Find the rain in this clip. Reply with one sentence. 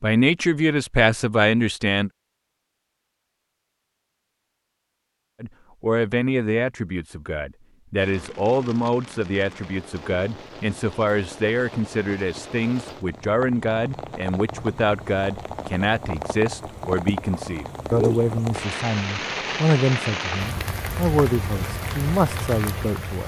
You can hear the rain from 8.0 to 23.2 s.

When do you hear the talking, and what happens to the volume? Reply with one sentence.
You can hear the talking briefly from 0.0 to 2.1 s; and from 5.4 to 23.2 s, at a steady volume.